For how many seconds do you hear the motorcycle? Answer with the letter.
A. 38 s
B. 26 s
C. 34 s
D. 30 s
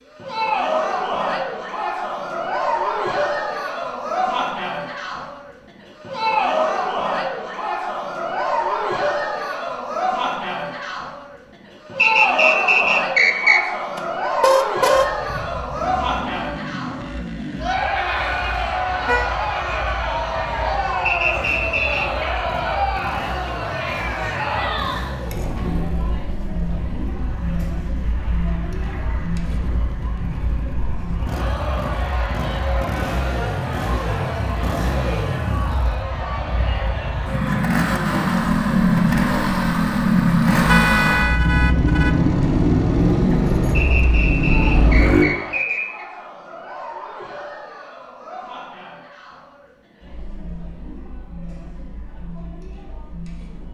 D.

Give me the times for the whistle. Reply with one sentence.
You can hear the whistle from 11.9 to 13.6 s, from 21.1 to 22.2 s and from 43.8 to 46.0 s.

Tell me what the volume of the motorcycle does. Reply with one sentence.
The volume of the motorcycle goes up.